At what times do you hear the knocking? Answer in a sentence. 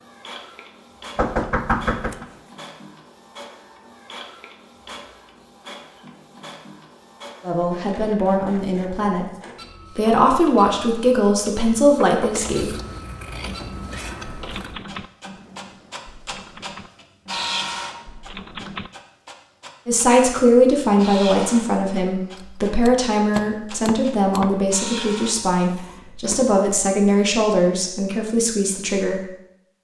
You can hear the knocking from 1.1 to 2.2 s, from 12.0 to 12.5 s and from 23.4 to 24.6 s.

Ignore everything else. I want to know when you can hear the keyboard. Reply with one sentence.
The keyboard can be heard from 13.4 to 18.9 s.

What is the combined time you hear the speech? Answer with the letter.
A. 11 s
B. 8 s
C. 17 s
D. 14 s
D.